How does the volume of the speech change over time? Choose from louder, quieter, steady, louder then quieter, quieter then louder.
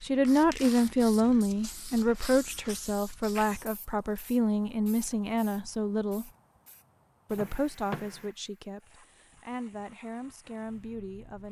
quieter.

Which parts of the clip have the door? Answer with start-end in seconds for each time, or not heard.
7.3-8.3.